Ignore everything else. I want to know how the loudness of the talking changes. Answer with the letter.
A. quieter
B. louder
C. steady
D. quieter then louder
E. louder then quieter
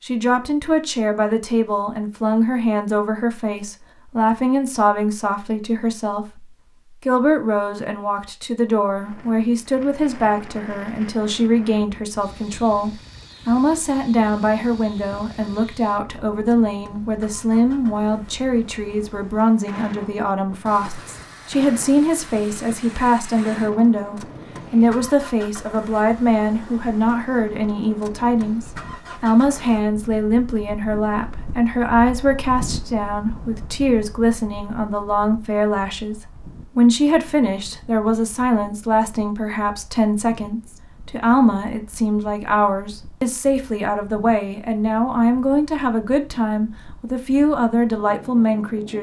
C.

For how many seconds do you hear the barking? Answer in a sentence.
You can't hear the barking here.